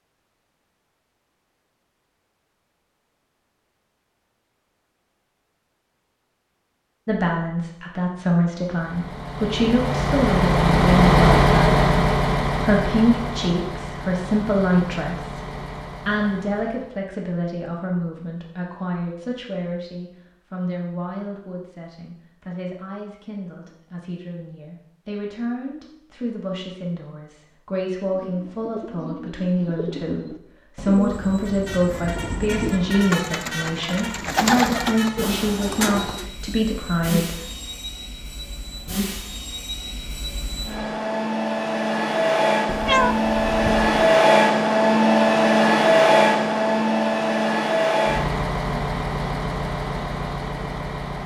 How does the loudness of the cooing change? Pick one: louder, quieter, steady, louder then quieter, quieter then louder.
louder.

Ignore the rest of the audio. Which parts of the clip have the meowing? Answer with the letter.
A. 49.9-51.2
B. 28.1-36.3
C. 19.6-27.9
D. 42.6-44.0
D.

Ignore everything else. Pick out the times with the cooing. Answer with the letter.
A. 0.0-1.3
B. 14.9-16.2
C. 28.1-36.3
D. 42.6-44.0
C.